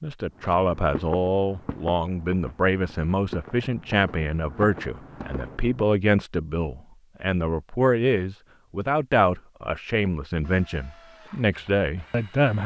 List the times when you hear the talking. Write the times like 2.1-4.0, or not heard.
0.0-12.6.